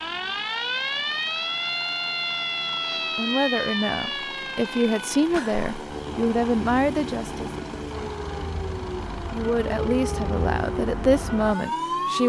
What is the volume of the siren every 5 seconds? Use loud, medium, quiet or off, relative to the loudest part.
loud, medium, loud.